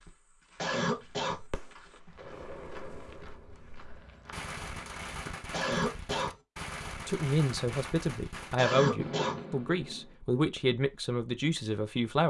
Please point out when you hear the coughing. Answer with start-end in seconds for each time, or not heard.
0.6-1.4, 5.5-6.3, 8.6-9.4.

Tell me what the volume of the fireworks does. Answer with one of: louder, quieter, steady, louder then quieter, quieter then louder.
louder.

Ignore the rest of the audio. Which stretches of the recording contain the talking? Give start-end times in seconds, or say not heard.
7.0-12.2.